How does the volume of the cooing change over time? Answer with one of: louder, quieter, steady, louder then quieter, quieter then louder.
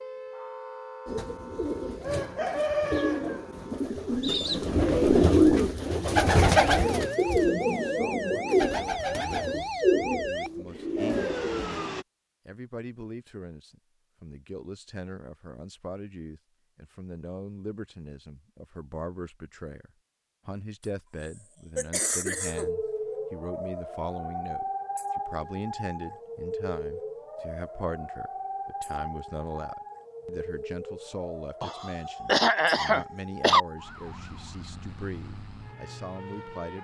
louder then quieter.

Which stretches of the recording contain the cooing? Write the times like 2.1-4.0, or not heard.
1.1-11.7.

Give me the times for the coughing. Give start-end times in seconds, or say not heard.
6.3-6.8, 21.8-22.6, 31.6-33.6.